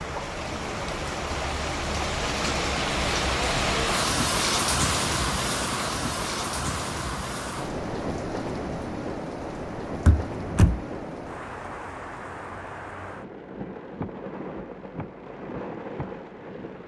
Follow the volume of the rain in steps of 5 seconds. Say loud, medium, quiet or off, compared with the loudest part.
loud, loud, medium, medium.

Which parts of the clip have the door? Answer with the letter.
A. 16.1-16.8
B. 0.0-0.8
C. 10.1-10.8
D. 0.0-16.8
C.